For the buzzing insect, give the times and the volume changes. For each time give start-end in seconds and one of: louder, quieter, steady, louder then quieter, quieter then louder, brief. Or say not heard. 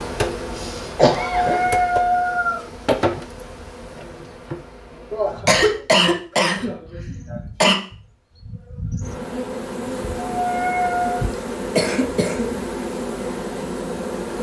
0.0-14.3 quieter then louder.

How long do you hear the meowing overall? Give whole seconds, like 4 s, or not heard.
2 s.